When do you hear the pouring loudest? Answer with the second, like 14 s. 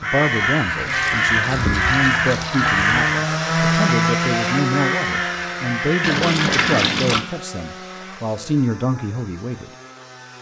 7 s.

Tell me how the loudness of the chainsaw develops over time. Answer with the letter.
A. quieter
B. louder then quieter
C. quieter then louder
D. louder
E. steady
B.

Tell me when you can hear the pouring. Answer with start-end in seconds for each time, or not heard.
0.8-2.9, 6.0-7.2.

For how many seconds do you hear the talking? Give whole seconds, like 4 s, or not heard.
10 s.